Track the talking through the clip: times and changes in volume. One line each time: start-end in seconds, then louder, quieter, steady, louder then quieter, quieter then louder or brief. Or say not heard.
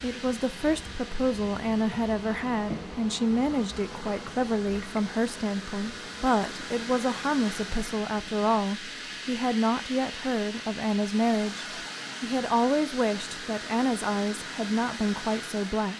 0.0-15.9 steady.